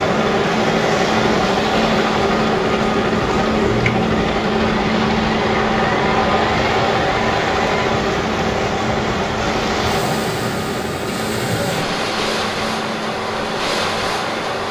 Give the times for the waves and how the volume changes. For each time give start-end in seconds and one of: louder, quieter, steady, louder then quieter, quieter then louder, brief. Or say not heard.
0.0-14.6 steady.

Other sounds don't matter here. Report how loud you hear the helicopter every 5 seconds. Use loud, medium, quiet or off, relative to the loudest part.
loud, loud, medium.